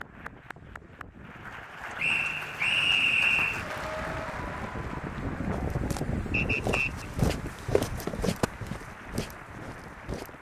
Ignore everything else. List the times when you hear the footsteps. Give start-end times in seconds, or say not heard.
5.5-10.3.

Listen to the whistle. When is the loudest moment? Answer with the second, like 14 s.
3 s.